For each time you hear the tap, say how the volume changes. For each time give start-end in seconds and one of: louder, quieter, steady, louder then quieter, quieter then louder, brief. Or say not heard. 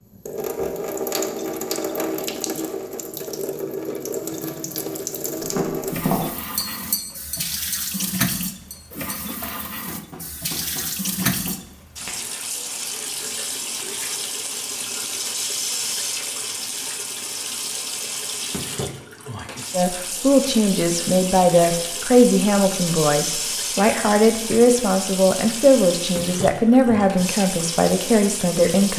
0.1-28.9 steady.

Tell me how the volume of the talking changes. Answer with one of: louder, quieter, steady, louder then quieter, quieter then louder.
steady.